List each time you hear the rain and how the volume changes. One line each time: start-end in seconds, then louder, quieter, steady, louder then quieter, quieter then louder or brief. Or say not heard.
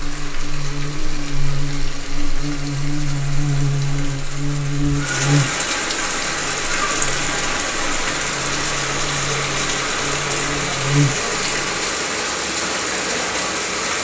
0.0-13.9 louder.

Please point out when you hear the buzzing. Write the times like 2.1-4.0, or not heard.
0.0-11.8.